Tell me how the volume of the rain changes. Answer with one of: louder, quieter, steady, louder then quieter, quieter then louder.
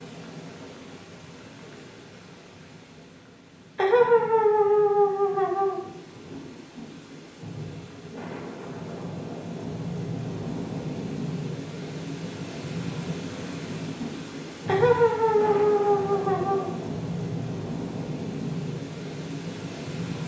louder.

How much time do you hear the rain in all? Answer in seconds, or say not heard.
20 s.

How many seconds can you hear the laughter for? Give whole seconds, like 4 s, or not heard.
4 s.